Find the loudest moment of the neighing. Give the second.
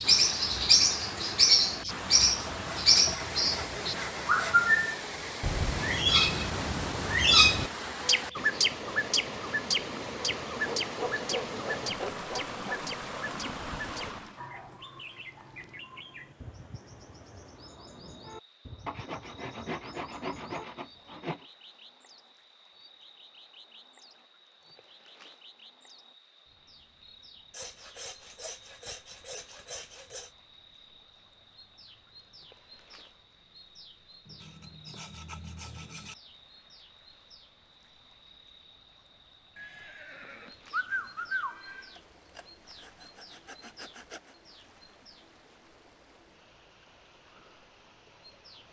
41 s.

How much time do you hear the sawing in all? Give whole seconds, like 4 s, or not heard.
14 s.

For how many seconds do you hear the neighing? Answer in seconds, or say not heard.
2 s.